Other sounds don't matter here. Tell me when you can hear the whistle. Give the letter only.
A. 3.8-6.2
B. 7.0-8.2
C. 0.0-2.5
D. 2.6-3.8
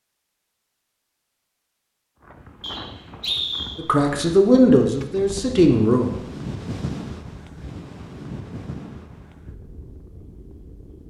D.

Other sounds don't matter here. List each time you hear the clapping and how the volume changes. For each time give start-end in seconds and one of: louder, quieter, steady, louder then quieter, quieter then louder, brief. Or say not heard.
not heard.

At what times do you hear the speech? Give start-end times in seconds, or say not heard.
3.8-6.2.